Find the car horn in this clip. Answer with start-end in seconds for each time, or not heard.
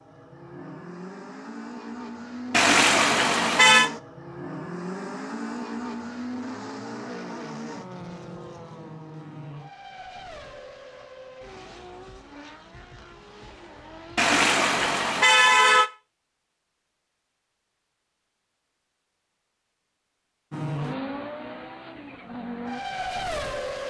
2.5-3.9, 14.2-15.9.